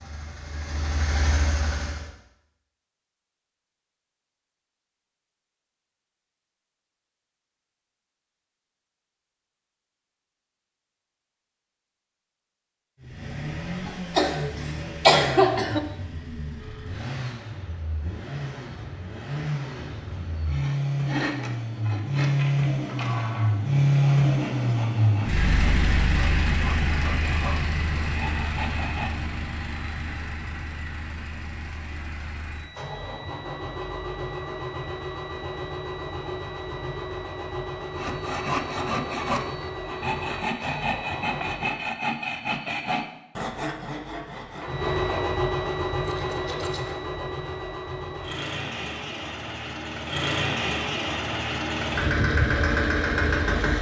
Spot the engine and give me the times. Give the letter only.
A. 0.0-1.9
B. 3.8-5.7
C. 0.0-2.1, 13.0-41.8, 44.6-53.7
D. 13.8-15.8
C.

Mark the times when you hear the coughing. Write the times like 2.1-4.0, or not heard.
13.8-15.8.